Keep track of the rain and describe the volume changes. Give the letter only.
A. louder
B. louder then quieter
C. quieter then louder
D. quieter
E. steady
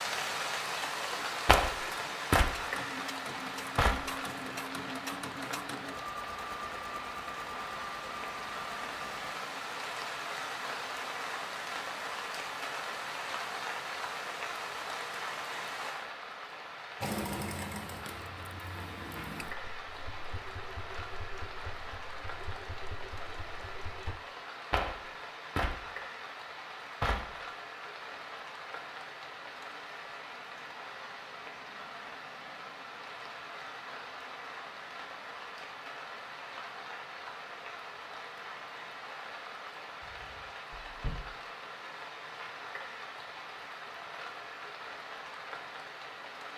D.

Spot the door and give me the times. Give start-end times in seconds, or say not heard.
40.0-41.3.